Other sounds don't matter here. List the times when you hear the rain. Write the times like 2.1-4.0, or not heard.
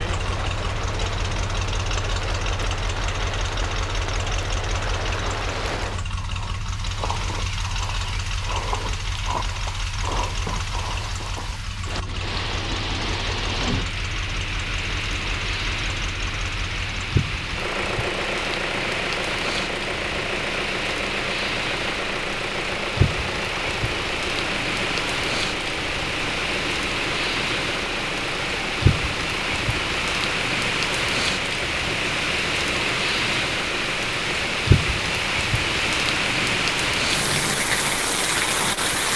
0.0-39.1.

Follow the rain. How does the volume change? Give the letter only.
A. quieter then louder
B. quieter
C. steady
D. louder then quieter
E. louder
E.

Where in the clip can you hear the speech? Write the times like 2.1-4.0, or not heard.
not heard.